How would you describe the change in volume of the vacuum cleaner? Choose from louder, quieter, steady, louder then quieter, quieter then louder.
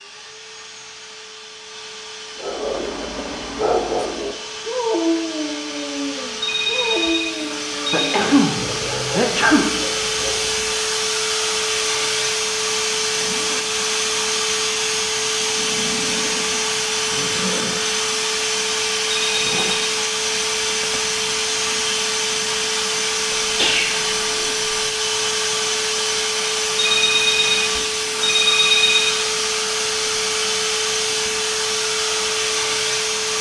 louder.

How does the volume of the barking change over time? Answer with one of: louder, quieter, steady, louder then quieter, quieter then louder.
quieter.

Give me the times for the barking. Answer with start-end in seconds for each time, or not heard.
2.4-10.6.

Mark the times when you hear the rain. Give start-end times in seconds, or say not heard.
not heard.